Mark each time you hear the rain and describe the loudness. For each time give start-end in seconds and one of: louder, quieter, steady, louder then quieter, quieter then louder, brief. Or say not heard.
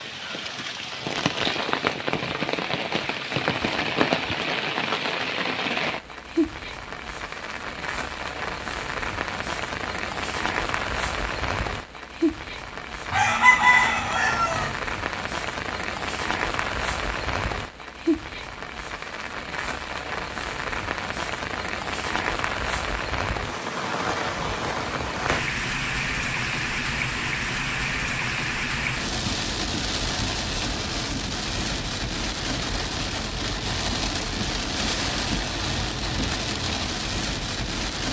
0.0-38.0 steady.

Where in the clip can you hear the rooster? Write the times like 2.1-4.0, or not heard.
13.1-14.8.